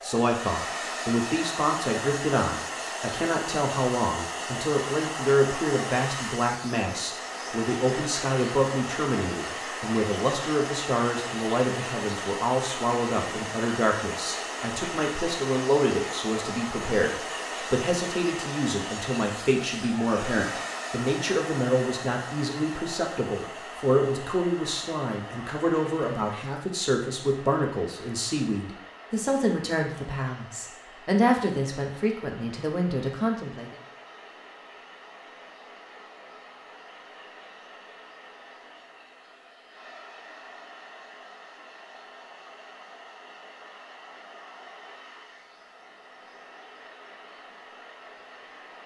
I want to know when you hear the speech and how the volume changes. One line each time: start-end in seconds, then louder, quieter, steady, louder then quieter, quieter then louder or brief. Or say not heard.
0.0-33.8 steady.